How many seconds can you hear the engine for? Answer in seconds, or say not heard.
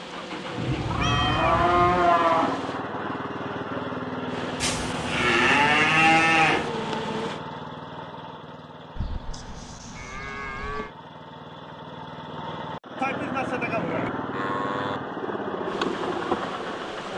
17 s.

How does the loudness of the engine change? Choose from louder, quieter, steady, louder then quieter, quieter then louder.
quieter then louder.